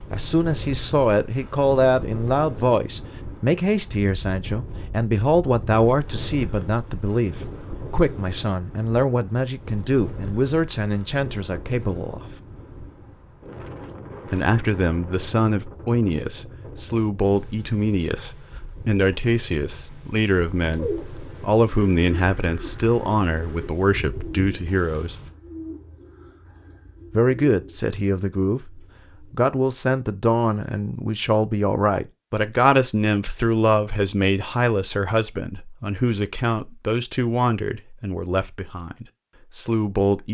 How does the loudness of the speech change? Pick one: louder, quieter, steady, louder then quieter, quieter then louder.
steady.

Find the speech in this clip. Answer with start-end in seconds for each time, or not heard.
0.1-12.3, 14.2-25.1, 27.1-40.2.